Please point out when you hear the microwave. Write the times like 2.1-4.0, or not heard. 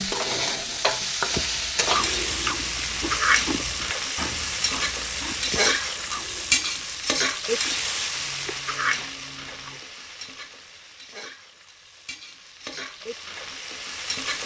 not heard.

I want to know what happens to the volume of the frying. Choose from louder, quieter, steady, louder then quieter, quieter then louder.
quieter.